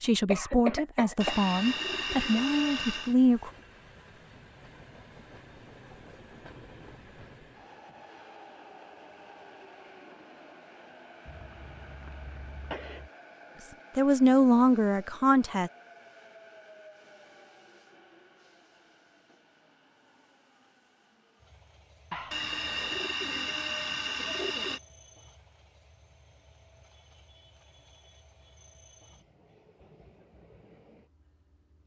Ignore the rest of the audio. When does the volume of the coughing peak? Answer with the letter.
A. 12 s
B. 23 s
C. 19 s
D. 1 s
D.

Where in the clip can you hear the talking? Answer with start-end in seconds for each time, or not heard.
0.0-3.5, 13.9-15.7.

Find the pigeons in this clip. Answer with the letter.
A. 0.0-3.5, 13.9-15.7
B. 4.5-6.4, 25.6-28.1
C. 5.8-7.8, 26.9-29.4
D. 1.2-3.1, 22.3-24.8
D.